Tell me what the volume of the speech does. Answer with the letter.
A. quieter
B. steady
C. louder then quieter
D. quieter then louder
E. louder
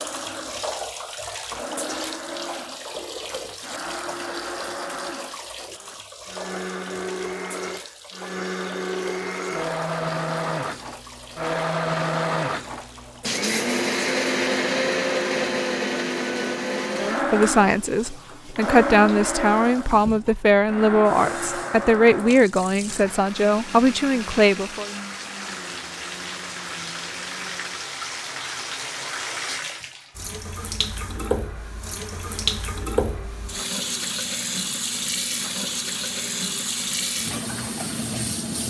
B.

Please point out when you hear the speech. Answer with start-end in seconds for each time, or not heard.
16.9-24.9.